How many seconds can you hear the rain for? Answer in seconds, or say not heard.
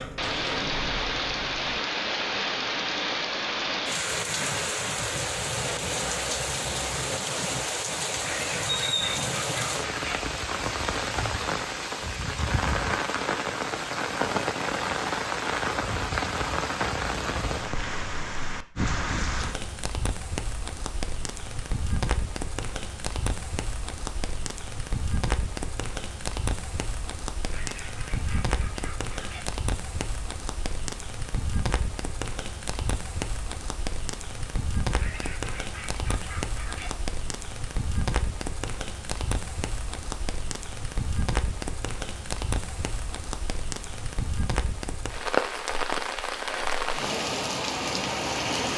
49 s.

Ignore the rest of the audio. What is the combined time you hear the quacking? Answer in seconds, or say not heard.
6 s.